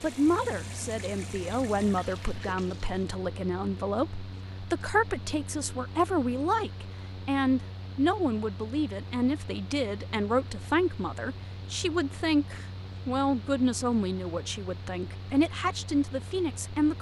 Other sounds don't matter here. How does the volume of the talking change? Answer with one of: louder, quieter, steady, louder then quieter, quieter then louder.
steady.